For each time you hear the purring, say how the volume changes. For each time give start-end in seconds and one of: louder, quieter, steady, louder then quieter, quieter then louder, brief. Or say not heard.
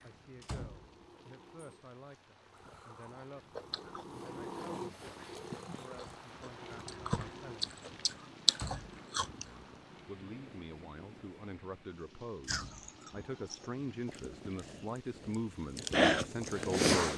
0.0-14.9 louder then quieter.